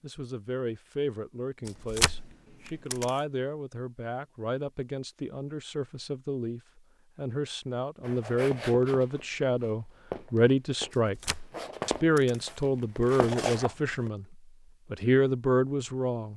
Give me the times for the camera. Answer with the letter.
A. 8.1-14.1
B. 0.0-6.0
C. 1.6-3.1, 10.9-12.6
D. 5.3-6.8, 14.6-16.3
C.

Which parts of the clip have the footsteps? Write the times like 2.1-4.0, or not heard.
8.1-14.1.